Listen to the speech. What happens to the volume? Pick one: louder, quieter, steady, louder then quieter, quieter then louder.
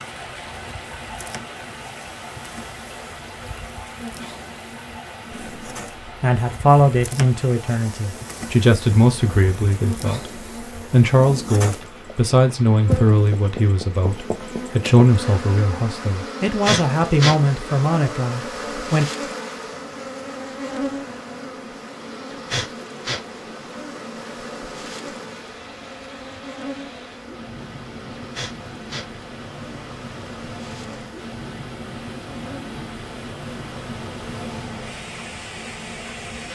steady.